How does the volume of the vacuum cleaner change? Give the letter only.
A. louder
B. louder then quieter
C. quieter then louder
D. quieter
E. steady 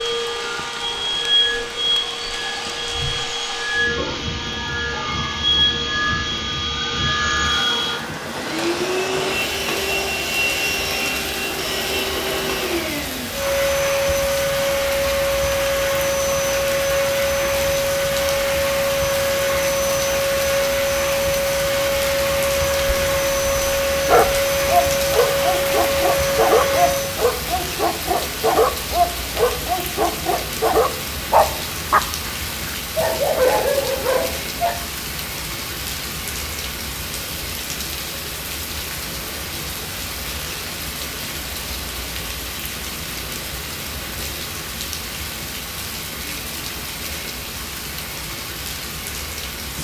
E.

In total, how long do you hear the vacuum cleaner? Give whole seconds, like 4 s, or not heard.
27 s.